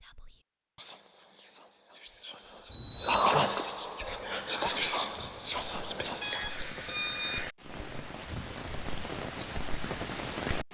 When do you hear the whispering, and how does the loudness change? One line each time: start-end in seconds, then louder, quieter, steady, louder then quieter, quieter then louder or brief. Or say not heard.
0.0-6.8 louder then quieter.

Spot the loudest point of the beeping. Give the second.
3 s.